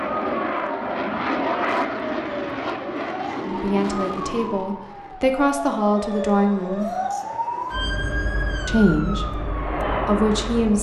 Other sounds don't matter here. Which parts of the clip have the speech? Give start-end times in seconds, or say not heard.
3.5-6.9, 8.7-10.7.